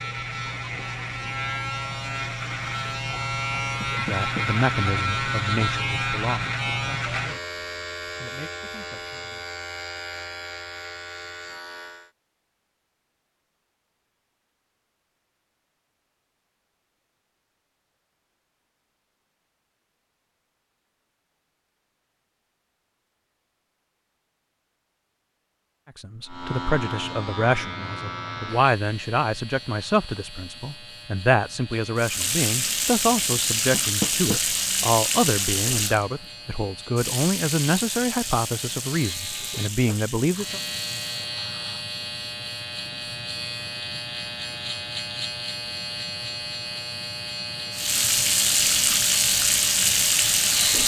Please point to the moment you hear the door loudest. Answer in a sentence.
The volume of the door peaks at 34 seconds.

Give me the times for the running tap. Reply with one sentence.
You can hear the running tap from 31.9 to 41.2 s and from 47.7 to 50.8 s.